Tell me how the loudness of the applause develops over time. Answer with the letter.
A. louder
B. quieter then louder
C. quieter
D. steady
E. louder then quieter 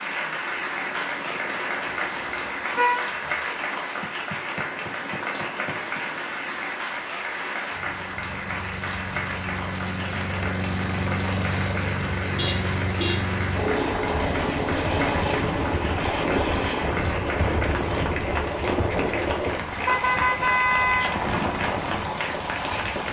D.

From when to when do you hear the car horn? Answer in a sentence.
The car horn can be heard from 1.9 to 3.1 s, from 12.3 to 13.2 s and from 19.9 to 21.1 s.